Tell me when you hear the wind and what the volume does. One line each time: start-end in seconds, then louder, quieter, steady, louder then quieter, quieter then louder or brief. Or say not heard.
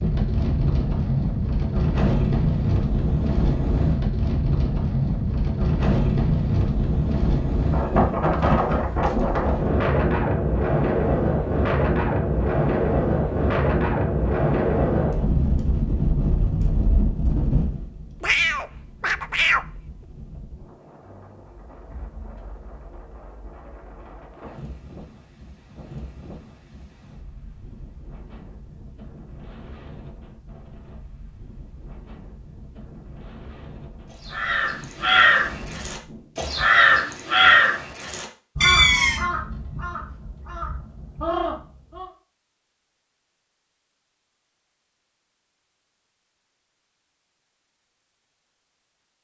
0.0-36.4 quieter.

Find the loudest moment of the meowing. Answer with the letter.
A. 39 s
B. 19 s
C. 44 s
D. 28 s
A.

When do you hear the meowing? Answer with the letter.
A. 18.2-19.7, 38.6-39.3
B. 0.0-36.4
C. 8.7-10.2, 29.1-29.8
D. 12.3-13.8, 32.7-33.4
A.